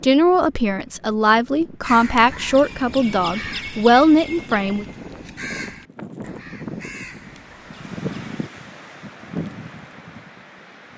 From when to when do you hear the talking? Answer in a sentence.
The talking can be heard from 0.0 to 4.8 s.